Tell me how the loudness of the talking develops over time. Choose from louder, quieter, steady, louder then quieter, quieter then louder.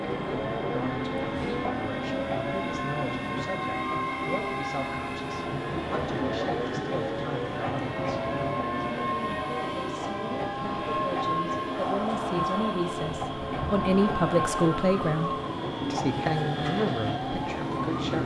louder.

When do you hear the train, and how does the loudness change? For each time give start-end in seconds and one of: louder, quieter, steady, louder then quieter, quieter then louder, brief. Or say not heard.
0.0-18.2 steady.